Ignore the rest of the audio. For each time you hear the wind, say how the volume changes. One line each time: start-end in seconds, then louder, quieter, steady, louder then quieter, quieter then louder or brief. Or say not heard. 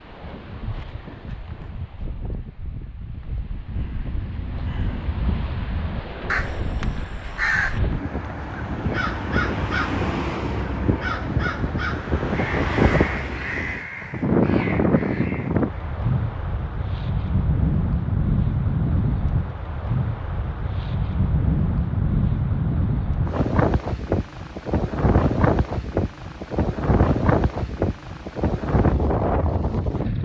0.0-30.1 louder.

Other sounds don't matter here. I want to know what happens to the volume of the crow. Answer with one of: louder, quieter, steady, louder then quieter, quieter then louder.
louder then quieter.